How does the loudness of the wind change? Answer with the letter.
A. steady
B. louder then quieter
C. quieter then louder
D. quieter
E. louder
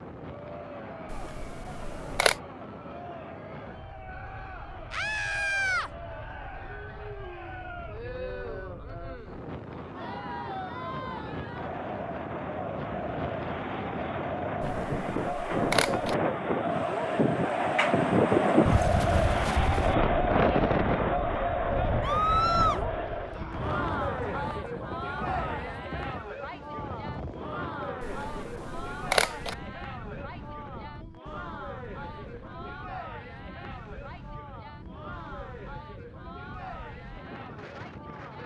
B.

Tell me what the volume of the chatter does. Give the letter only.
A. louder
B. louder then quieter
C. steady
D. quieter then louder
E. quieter
B.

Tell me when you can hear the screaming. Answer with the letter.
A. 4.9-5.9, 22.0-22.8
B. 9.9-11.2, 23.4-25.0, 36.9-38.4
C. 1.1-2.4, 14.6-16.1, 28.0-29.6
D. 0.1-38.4
A.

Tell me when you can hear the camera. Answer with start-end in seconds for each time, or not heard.
1.1-2.4, 14.6-16.1, 28.0-29.6.